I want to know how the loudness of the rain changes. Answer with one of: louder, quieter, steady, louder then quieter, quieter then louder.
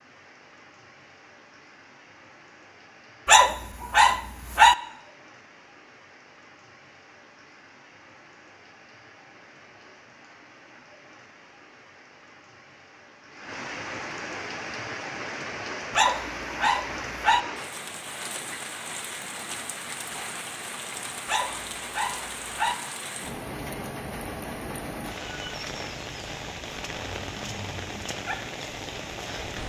louder.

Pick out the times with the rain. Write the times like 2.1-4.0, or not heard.
0.0-29.6.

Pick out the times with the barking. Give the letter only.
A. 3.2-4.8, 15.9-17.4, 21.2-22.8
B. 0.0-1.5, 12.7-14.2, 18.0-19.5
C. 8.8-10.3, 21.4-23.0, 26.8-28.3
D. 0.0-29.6
A.